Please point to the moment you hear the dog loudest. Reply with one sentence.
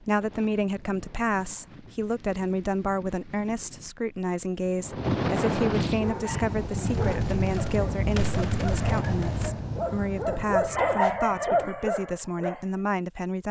The loudest moment of the dog is at 11 seconds.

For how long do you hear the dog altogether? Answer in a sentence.
The dog can be heard for 7 seconds in total.